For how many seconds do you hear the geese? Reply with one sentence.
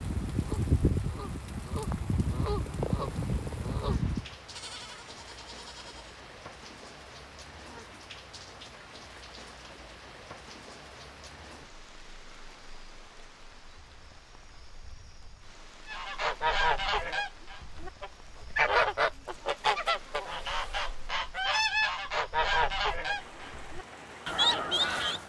The geese can be heard for 14 seconds in total.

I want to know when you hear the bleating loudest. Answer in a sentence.
The volume of the bleating peaks at 5 seconds.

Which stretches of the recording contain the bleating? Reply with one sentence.
The bleating can be heard from 4.5 to 6.2 s.